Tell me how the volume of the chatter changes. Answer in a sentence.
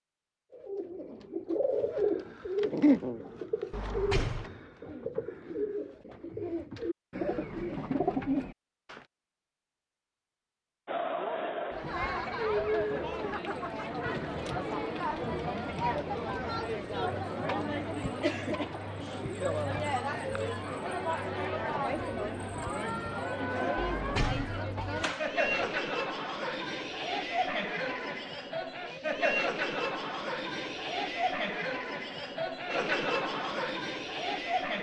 The volume of the chatter stays about the same.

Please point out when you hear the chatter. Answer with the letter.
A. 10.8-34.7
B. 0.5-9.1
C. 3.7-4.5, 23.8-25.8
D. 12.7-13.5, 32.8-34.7
A.